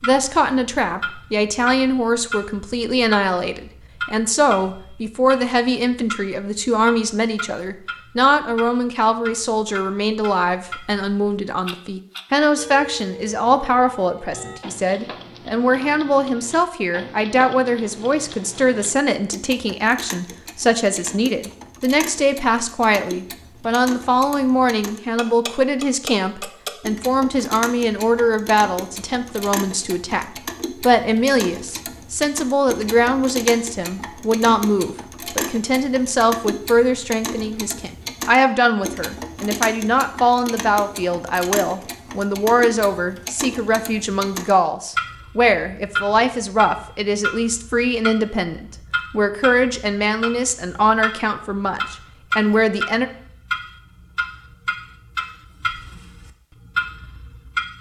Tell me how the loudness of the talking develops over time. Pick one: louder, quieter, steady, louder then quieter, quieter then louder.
steady.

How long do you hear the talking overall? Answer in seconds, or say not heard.
53 s.